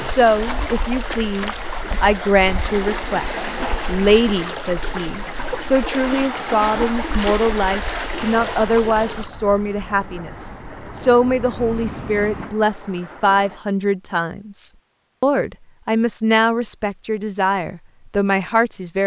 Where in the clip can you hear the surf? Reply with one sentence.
You can hear the surf from 0.0 to 13.6 s.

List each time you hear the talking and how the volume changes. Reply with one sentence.
You can hear the talking from 0.0 to 19.0 s, at a steady volume.